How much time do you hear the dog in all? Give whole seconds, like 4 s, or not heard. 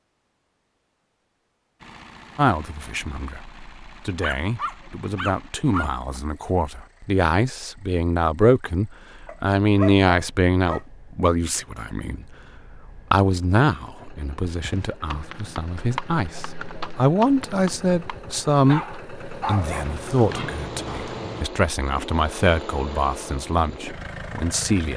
5 s.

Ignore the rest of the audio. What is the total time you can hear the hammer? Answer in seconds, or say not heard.
not heard.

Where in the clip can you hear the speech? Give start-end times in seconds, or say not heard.
2.4-24.9.